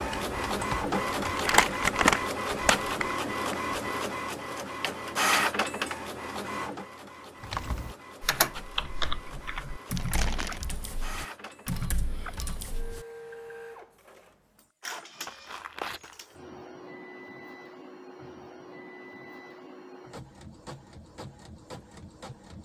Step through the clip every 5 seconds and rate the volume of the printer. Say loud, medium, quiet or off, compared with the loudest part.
loud, loud, quiet, quiet, quiet.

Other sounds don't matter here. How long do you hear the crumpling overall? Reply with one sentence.
The crumpling can be heard for 4 seconds in total.